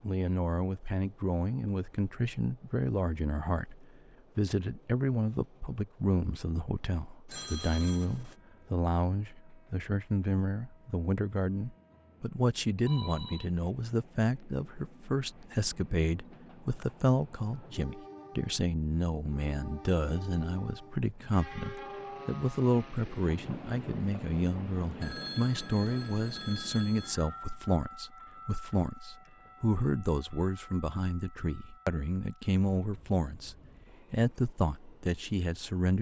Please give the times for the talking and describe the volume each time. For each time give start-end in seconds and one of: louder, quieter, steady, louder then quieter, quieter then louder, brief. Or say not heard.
0.0-35.9 steady.